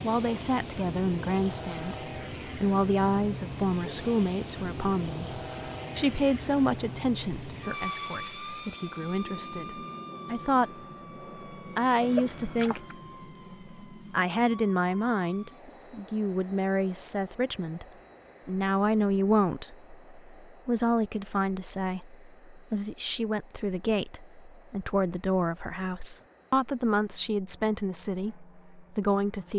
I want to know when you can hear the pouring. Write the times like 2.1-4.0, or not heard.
12.0-12.9.